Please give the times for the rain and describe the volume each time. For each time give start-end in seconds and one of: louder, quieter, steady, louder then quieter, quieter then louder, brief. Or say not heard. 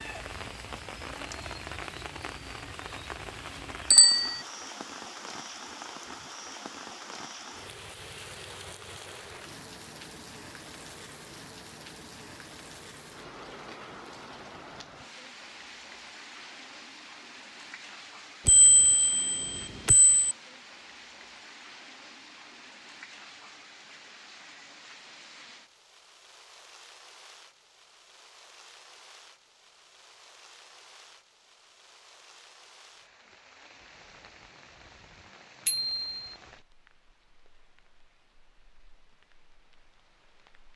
0.0-40.7 quieter.